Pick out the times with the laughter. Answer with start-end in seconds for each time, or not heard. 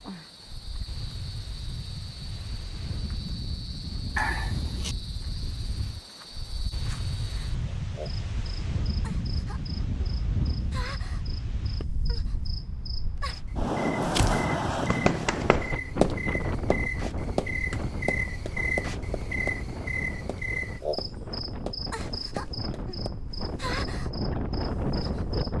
4.2-5.0.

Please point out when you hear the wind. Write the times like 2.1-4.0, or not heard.
0.0-25.5.